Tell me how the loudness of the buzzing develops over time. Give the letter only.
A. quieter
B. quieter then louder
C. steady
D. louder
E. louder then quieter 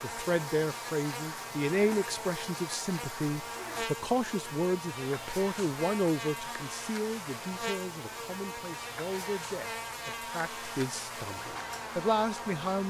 C.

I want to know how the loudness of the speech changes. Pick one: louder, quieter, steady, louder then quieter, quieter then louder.
quieter then louder.